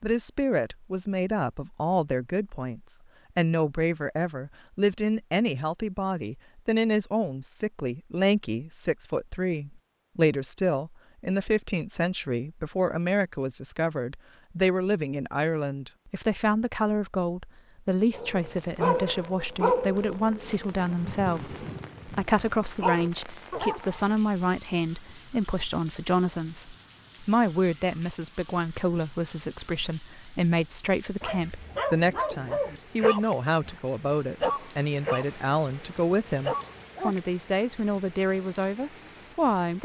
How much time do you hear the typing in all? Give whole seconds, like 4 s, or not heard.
not heard.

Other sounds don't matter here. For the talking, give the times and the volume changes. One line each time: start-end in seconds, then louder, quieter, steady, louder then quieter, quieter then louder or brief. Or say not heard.
0.0-39.8 steady.